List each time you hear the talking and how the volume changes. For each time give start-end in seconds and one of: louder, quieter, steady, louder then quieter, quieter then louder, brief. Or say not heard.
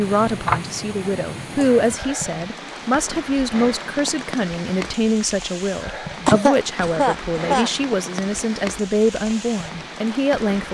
0.0-10.7 steady.